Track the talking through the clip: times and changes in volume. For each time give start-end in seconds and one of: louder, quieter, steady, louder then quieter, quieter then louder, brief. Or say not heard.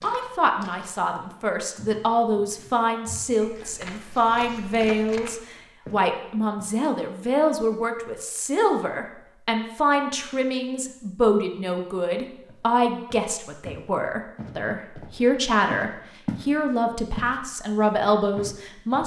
0.0-19.0 steady.